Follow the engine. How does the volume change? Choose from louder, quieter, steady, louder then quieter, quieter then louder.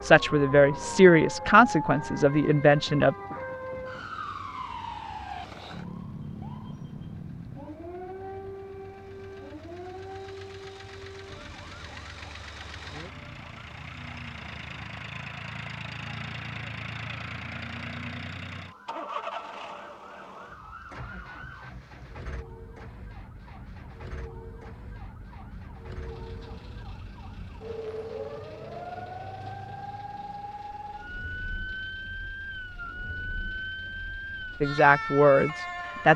louder then quieter.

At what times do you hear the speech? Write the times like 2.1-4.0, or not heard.
0.0-3.1, 34.6-36.1.